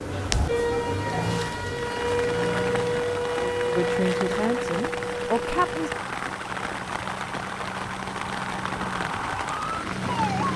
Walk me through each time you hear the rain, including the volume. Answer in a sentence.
The rain can be heard from 1.7 to 10.5 s, at a steady volume.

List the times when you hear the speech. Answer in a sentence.
The speech can be heard from 3.8 to 5.9 s.